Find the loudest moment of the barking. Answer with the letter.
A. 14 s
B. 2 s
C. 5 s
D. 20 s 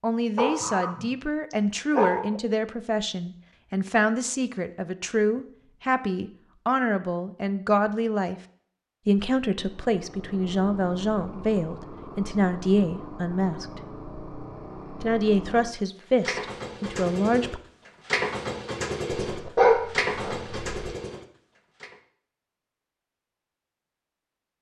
D.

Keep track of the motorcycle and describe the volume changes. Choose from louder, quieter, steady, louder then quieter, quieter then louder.
louder.